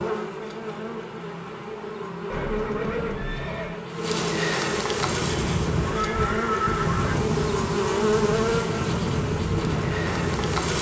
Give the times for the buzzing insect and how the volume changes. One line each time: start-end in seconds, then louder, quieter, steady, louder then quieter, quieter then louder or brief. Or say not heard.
0.0-10.7 louder.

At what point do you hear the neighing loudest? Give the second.
7 s.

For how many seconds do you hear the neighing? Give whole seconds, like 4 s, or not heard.
3 s.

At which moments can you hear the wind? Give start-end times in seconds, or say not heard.
5.0-10.7.